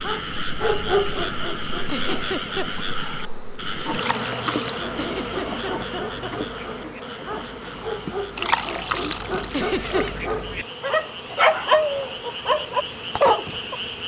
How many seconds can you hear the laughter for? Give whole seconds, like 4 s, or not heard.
3 s.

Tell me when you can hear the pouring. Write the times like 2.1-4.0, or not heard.
3.9-4.8, 8.3-10.4.